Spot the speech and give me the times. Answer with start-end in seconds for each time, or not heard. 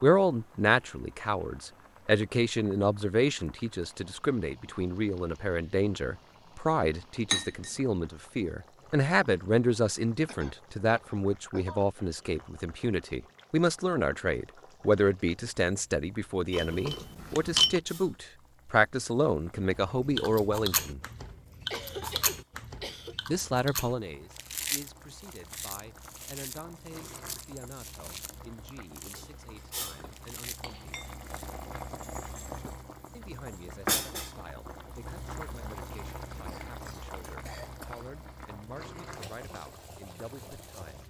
0.0-21.0, 23.2-31.0, 33.1-41.0.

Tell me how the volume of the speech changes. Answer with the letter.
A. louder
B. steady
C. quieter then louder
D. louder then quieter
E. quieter
E.